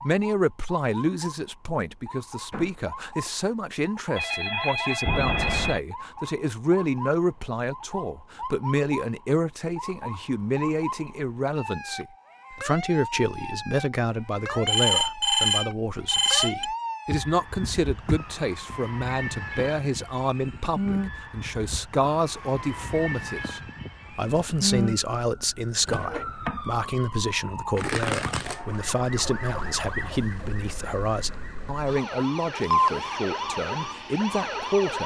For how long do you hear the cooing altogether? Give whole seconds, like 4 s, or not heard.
not heard.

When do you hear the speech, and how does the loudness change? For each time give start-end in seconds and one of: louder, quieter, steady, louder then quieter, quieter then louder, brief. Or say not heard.
0.0-35.0 steady.